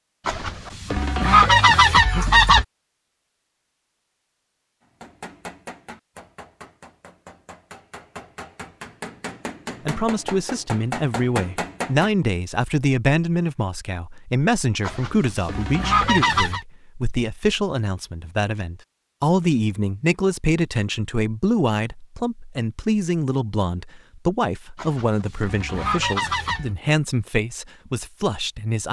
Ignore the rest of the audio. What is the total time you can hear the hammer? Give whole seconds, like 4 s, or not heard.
7 s.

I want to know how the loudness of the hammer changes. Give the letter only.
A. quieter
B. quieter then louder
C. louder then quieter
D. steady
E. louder
B.